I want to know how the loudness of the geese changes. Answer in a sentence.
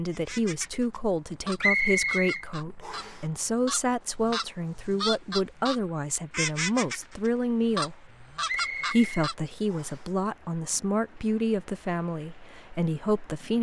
The loudness of the geese goes up.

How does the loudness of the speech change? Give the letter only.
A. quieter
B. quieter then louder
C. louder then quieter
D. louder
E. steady
E.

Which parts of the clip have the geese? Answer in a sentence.
You can hear the geese from 0.1 to 9.3 s.